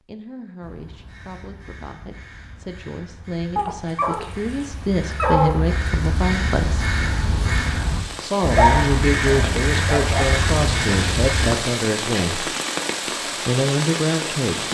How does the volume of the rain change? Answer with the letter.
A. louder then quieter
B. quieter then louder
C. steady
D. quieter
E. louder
E.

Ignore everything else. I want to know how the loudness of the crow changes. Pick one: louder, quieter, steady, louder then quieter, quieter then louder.
louder.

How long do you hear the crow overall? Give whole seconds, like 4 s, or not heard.
11 s.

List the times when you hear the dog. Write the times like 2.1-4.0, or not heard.
3.5-5.5, 8.4-10.2.